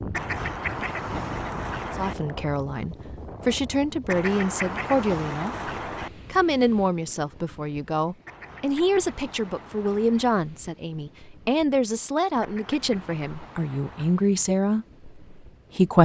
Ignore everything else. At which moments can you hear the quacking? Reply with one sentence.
The quacking can be heard from 0.1 to 2.1 s, from 4.0 to 6.1 s, from 8.2 to 10.2 s and from 12.4 to 14.2 s.